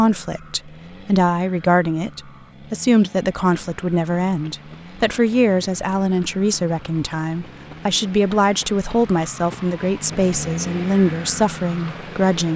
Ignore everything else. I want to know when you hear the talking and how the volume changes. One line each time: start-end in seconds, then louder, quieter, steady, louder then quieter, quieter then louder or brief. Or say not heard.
0.0-12.5 steady.